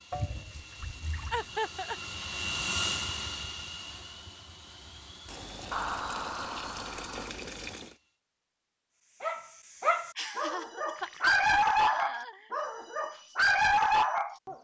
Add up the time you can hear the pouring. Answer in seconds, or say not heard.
5 s.